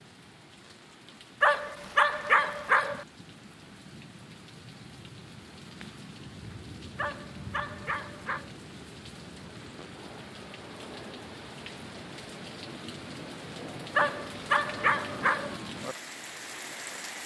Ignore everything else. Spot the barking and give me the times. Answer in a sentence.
The barking can be heard from 1.4 to 3.0 s, from 7.0 to 8.5 s and from 13.9 to 15.6 s.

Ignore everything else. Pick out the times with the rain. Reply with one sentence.
You can hear the rain from 0.0 to 17.2 s.